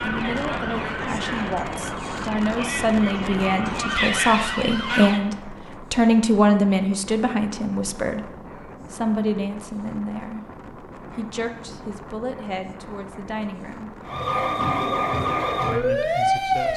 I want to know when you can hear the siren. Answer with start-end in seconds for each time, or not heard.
0.0-5.2, 14.1-16.7.